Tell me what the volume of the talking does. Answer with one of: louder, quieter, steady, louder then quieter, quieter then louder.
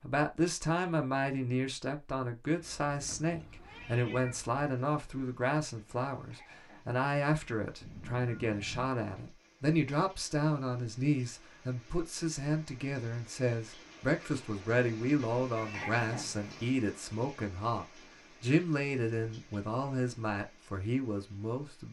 steady.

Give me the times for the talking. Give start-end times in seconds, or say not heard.
0.0-21.8.